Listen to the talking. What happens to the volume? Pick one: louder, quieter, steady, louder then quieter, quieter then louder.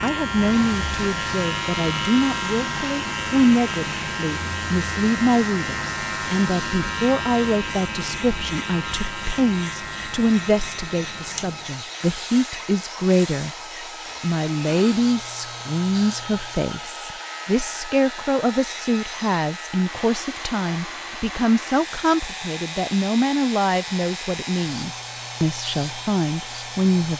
steady.